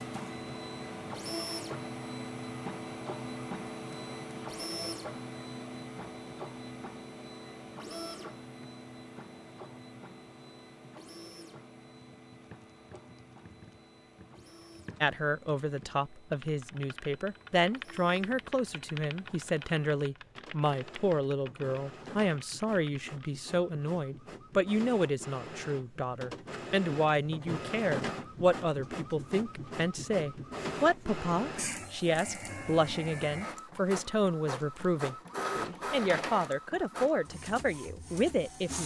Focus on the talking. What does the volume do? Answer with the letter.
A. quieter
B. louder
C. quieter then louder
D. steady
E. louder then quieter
D.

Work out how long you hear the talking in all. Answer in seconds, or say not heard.
24 s.